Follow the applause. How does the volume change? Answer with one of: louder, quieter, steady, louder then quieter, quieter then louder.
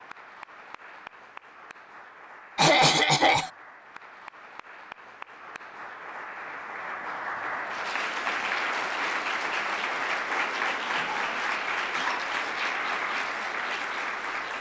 louder.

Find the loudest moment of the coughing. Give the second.
3 s.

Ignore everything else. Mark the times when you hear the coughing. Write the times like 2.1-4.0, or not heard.
2.5-3.5, 10.9-12.6.